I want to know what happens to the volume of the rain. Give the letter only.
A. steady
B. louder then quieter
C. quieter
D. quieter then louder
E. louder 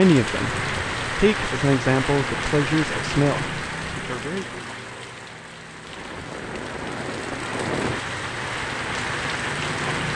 D.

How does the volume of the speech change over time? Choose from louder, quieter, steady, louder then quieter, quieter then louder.
louder then quieter.